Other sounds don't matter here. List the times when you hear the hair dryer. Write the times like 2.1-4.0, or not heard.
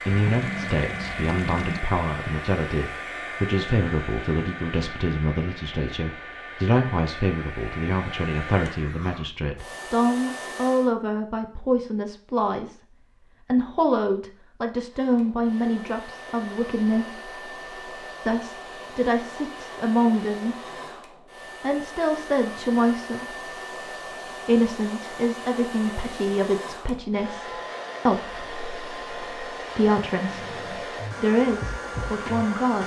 0.0-10.9, 14.9-32.8.